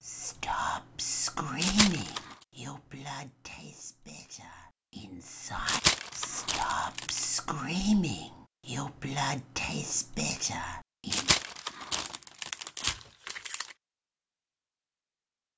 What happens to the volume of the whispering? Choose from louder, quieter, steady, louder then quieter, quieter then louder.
quieter then louder.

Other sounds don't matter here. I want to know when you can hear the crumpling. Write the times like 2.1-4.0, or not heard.
1.6-2.4, 5.7-7.2, 11.1-13.8.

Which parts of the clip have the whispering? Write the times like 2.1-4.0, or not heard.
0.0-11.4.